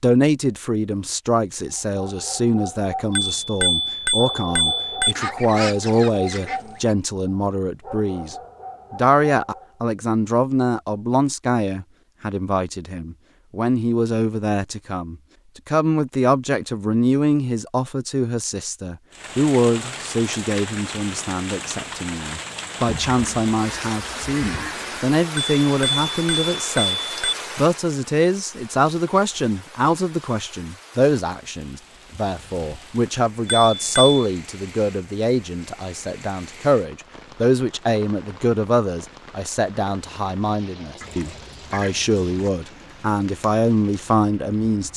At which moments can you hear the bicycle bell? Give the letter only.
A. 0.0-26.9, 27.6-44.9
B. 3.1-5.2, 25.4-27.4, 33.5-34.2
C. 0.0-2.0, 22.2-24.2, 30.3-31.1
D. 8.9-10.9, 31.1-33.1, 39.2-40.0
B.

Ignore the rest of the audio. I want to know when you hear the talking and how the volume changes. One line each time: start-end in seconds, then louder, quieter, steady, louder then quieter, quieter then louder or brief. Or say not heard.
0.0-26.9 steady
27.6-44.9 steady.